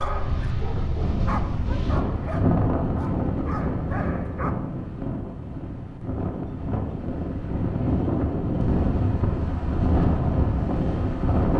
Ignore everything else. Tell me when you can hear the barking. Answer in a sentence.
You can hear the barking from 0.0 to 4.5 s.